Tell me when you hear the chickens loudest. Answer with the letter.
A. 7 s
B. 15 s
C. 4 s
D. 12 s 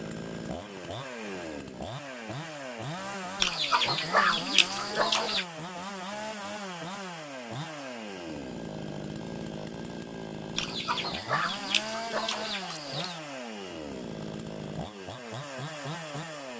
C.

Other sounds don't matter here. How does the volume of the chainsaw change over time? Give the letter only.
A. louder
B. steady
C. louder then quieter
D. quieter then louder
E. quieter
B.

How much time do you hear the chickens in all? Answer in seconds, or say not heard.
5 s.